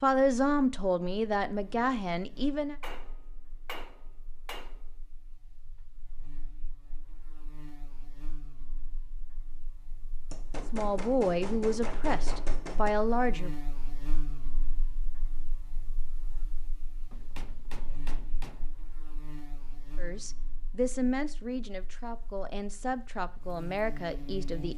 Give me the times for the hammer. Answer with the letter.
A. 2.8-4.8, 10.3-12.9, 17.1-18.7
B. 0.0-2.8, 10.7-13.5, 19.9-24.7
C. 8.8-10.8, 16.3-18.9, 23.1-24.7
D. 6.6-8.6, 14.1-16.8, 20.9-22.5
A.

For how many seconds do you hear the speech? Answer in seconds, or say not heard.
10 s.